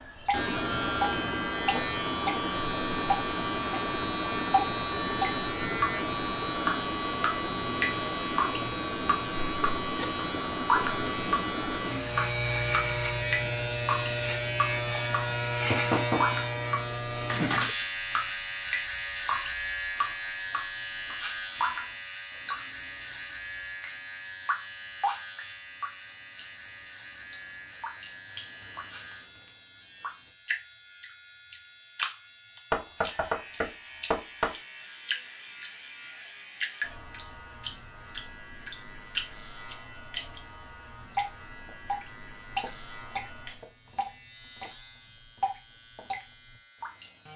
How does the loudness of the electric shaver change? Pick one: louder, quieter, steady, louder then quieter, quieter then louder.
quieter.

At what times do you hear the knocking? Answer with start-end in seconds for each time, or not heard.
15.7-16.4, 32.7-34.5.